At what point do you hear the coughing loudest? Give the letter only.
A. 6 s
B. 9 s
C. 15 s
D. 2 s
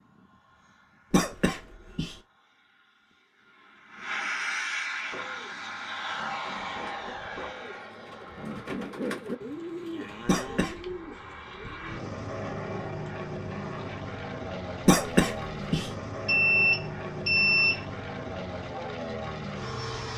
C.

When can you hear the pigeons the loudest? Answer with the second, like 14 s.
9 s.